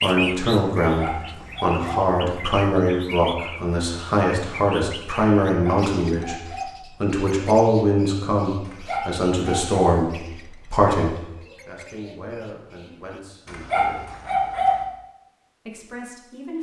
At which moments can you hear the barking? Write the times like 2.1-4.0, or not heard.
0.8-1.9, 5.5-6.8, 8.7-10.0, 13.4-14.8.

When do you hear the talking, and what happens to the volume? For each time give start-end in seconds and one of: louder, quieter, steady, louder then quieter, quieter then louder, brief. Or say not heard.
0.0-6.3 steady
7.0-14.1 quieter
15.7-16.5 brief.